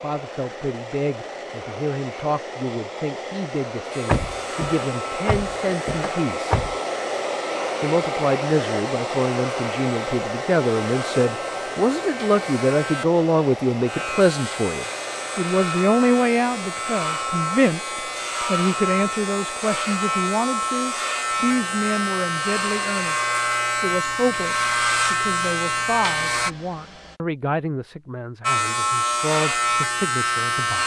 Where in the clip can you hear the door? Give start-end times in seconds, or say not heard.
4.0-6.8.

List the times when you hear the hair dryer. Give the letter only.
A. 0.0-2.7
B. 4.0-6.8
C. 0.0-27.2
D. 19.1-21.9
C.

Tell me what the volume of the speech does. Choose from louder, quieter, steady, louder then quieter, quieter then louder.
louder then quieter.